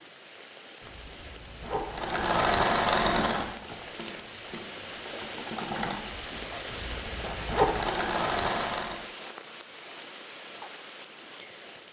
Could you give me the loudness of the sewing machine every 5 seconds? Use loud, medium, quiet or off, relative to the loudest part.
loud, medium, off.